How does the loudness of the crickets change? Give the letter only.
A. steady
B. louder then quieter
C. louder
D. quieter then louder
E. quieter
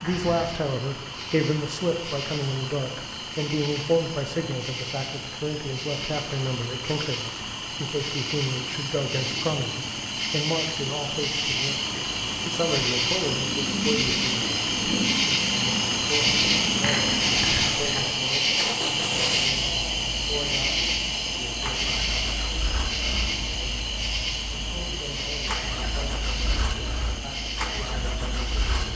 B.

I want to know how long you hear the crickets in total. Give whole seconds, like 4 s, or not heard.
29 s.